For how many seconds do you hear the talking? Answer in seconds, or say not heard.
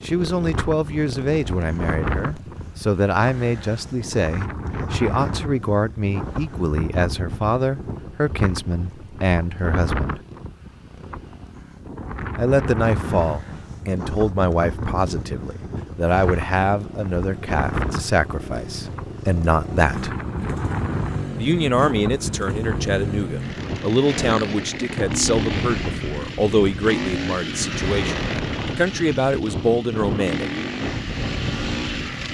27 s.